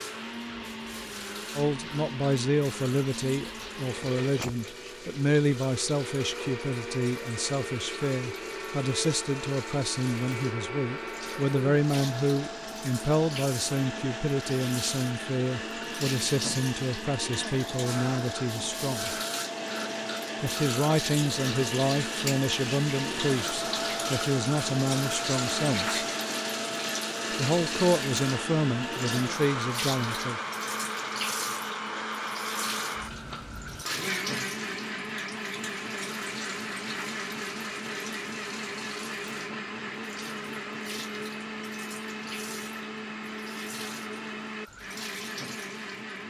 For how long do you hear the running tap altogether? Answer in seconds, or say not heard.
46 s.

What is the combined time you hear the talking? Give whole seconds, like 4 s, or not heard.
26 s.